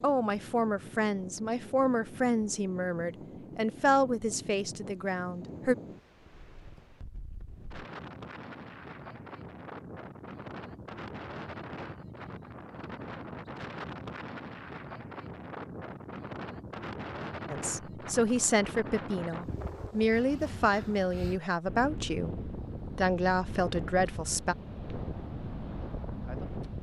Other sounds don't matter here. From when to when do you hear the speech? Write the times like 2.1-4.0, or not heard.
0.0-5.8, 17.5-24.6.